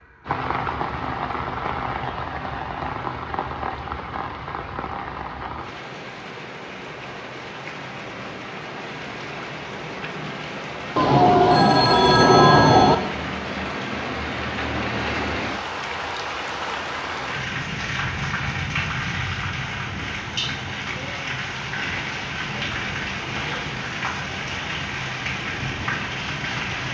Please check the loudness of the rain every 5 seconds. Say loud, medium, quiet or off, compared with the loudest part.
loud, medium, loud, loud, loud, loud.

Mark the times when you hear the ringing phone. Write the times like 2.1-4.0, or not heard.
10.9-12.9.